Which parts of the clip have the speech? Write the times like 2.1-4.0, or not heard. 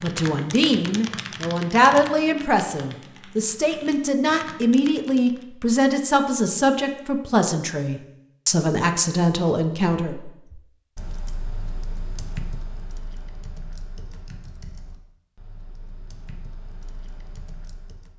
0.0-10.2.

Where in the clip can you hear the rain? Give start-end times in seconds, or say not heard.
not heard.